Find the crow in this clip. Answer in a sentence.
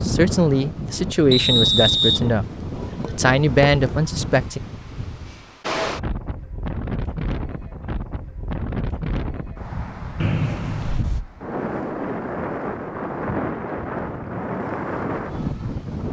The crow can't be heard in this clip.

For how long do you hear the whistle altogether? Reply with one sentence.
The whistle can be heard for 2 seconds in total.